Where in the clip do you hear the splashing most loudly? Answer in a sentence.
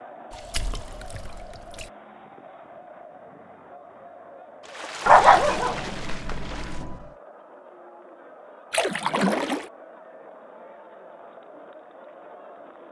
The loudest moment of the splashing is at 9 seconds.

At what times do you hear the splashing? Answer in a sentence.
You can hear the splashing from 0.3 to 1.9 s, from 4.6 to 6.8 s and from 8.7 to 9.7 s.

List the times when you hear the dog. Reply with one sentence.
The dog can be heard from 5.0 to 7.0 s.